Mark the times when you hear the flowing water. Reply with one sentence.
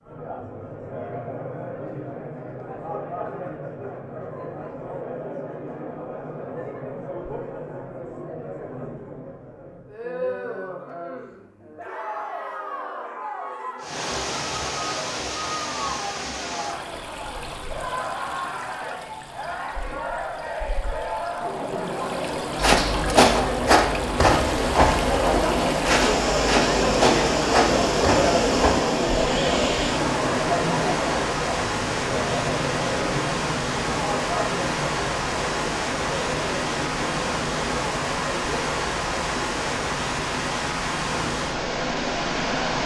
You can hear the flowing water from 13.8 to 42.8 s.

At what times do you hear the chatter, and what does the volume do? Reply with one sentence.
You can hear the chatter from 0.0 to 42.8 s, getting louder then quieter.